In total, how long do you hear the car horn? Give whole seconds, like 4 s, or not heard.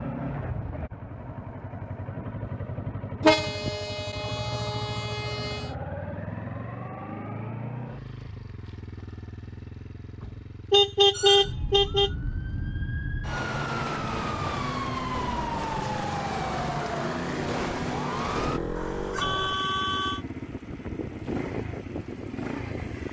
6 s.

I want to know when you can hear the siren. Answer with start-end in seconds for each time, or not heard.
11.1-18.6.